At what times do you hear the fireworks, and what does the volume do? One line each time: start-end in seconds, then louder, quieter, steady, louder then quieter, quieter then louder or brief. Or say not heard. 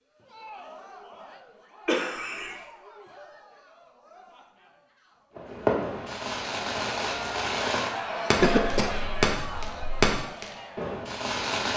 5.3-11.7 louder then quieter.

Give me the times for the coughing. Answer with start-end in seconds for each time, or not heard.
1.9-2.6, 8.3-10.2.